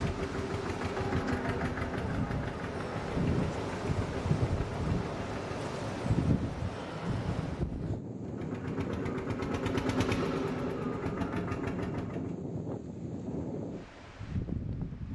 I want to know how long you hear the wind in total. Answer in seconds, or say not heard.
15 s.